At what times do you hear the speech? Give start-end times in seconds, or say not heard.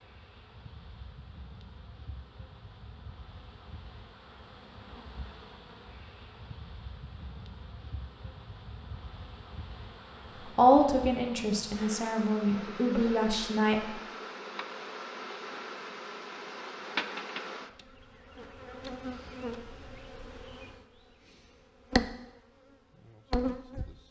10.6-13.8.